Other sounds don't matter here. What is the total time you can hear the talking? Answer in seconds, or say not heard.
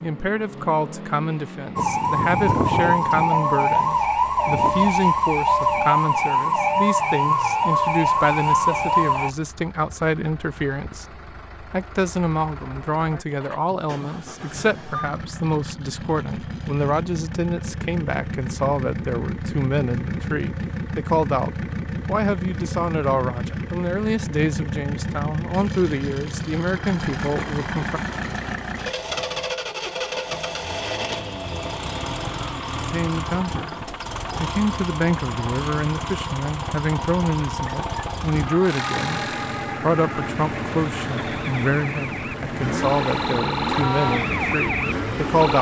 40 s.